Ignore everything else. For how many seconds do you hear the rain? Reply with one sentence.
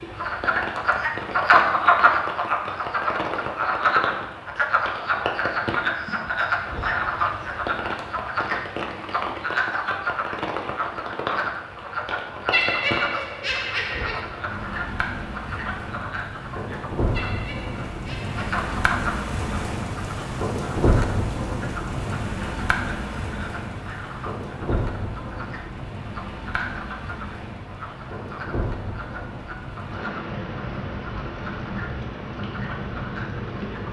You can hear the rain for 34 seconds altogether.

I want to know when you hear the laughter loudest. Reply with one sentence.
The loudest moment of the laughter is at 13 seconds.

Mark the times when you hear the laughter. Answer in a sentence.
You can hear the laughter from 12.5 to 14.2 s and from 17.1 to 18.6 s.